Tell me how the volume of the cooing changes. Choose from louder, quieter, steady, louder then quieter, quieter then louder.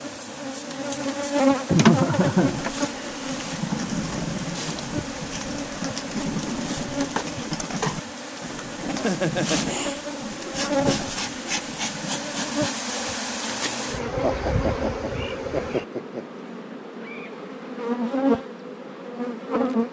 quieter.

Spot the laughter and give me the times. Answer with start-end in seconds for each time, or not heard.
1.7-2.6, 8.9-9.9, 14.2-16.2.